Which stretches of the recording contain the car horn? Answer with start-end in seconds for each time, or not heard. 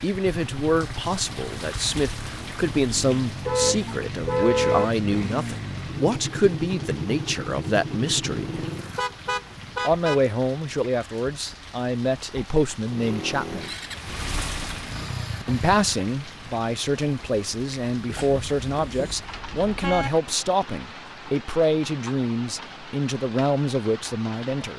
3.5-4.8, 8.3-10.2, 18.1-20.1.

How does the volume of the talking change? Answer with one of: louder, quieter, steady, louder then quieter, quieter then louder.
steady.